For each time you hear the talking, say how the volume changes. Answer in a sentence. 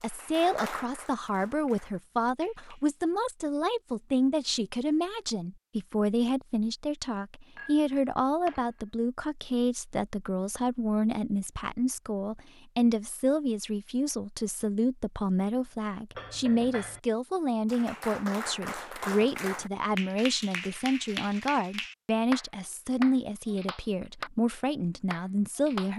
The talking can be heard from 0.0 to 25.9 s, at a steady volume.